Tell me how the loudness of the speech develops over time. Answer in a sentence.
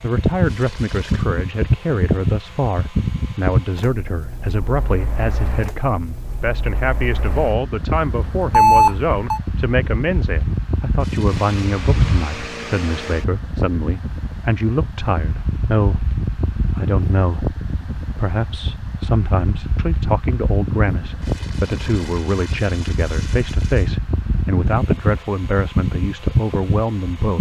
The volume of the speech stays about the same.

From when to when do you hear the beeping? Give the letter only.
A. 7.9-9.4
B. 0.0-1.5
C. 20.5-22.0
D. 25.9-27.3
A.